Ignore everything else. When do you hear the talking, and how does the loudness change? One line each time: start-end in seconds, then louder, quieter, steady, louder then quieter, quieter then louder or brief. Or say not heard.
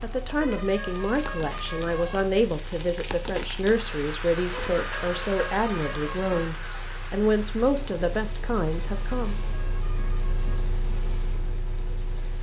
0.0-9.3 steady.